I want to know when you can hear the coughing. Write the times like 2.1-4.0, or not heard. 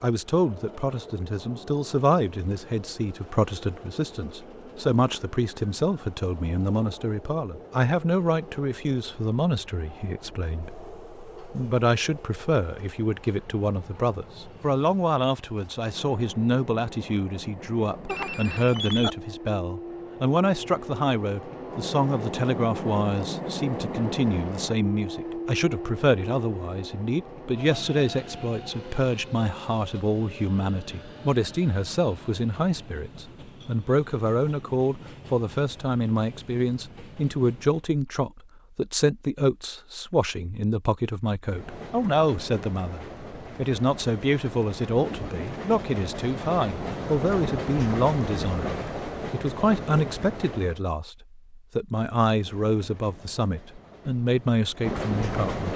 not heard.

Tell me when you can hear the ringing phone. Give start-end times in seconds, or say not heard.
18.1-19.1.